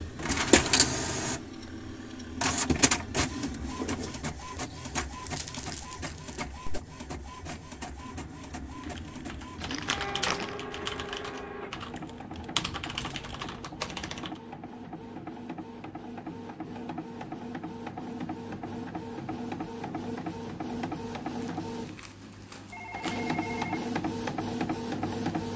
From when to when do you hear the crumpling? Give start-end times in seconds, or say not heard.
5.2-6.4, 9.6-10.6, 21.4-23.2.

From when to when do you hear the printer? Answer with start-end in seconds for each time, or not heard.
0.0-25.5.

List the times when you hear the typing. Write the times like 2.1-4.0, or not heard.
8.8-14.4.